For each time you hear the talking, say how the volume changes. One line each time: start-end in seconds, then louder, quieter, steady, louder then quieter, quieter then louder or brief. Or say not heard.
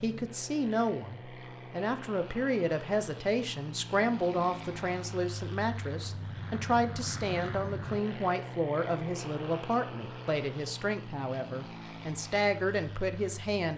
0.0-13.7 steady.